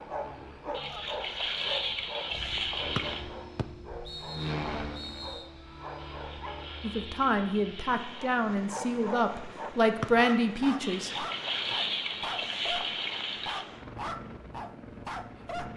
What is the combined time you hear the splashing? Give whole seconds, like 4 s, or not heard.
8 s.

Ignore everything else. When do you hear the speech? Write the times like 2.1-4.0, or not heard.
6.8-11.2.